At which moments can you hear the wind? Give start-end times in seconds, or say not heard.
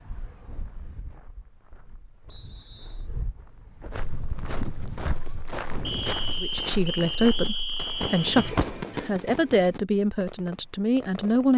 0.0-6.5.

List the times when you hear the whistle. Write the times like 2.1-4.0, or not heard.
2.2-3.1, 5.8-8.3.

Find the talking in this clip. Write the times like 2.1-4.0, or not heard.
6.4-11.5.